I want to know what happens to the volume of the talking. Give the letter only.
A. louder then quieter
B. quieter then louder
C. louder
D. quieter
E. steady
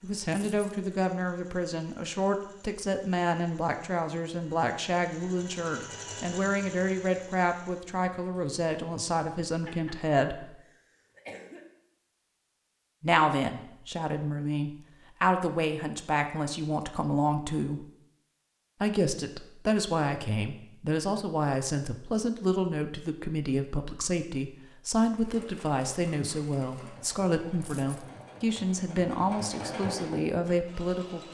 E.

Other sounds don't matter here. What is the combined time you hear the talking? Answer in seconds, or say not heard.
28 s.